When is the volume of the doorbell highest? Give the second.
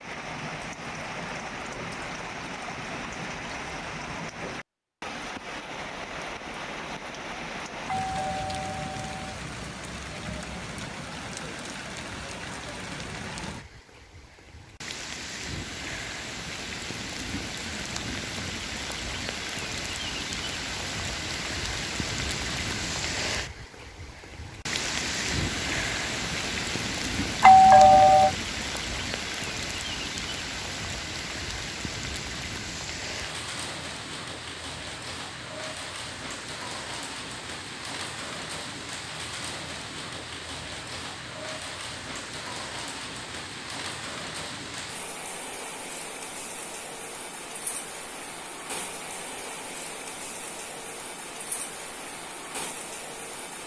28 s.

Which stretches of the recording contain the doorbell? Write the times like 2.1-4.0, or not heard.
8.0-9.3, 27.4-28.3.